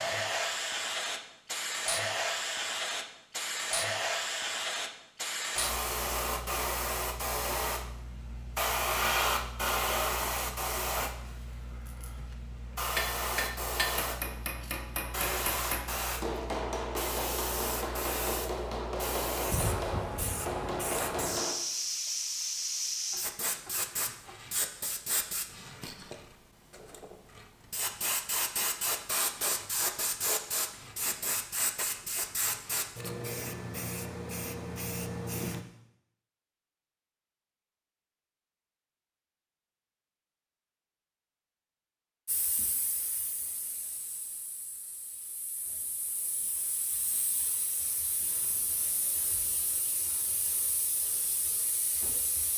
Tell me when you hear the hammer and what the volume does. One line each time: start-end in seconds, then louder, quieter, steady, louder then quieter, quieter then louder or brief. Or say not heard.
12.9-21.6 steady.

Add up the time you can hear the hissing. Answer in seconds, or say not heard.
46 s.